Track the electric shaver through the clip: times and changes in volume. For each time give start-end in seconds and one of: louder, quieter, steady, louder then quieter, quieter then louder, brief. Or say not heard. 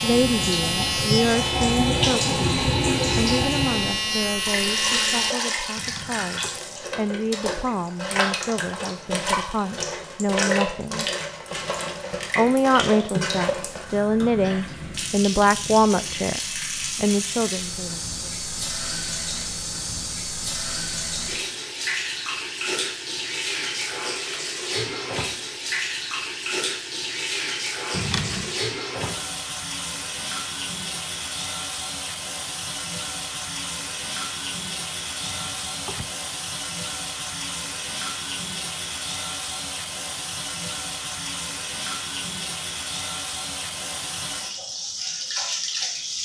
0.0-5.3 quieter then louder.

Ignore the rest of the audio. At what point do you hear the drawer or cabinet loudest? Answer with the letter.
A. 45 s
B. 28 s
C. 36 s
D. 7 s
B.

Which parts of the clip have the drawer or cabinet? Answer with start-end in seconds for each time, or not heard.
5.8-6.6, 27.9-28.6, 35.2-36.1.